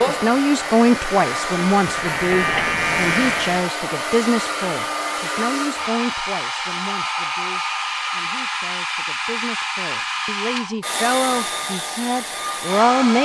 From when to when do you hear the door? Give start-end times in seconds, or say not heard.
not heard.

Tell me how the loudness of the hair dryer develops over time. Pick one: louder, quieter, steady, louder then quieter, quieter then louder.
steady.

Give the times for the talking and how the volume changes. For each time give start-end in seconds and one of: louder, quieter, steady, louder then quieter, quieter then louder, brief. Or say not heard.
0.1-13.2 quieter then louder.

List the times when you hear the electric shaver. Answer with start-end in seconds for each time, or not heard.
0.0-3.7.